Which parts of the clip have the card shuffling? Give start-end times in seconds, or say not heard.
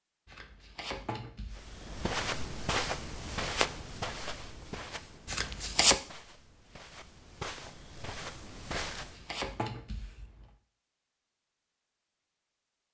0.2-1.8, 5.2-6.0, 8.9-10.2.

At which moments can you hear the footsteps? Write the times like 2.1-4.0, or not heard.
1.6-9.2.